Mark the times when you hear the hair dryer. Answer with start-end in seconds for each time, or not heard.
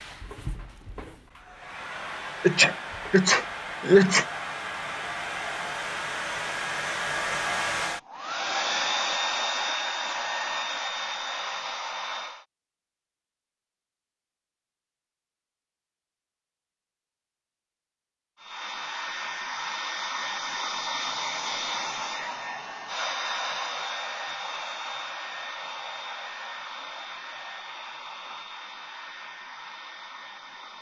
0.0-12.4, 18.4-30.7.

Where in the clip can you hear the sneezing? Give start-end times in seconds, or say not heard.
2.4-4.2.